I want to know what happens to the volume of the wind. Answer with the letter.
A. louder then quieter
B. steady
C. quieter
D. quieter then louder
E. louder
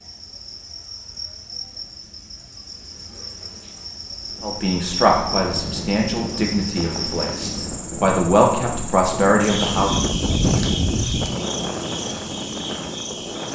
A.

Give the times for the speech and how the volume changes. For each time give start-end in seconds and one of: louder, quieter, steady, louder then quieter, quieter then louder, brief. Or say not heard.
4.4-9.9 quieter then louder.